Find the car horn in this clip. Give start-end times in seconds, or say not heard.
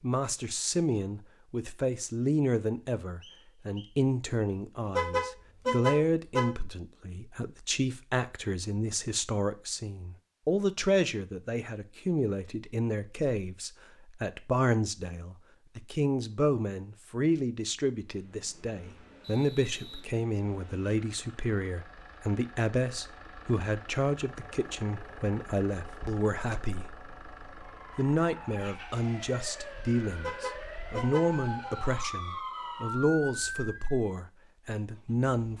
5.0-6.5, 30.2-31.7.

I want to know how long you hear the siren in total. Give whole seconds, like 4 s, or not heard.
6 s.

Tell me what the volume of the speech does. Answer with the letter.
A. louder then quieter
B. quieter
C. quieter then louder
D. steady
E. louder
D.